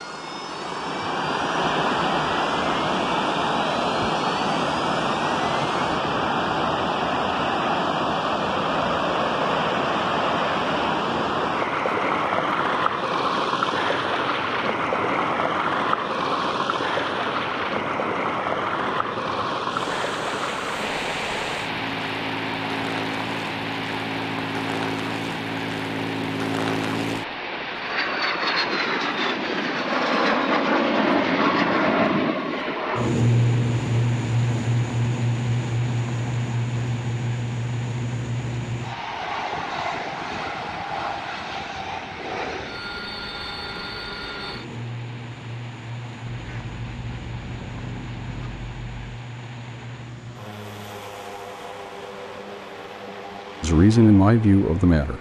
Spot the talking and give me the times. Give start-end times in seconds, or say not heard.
53.6-55.1.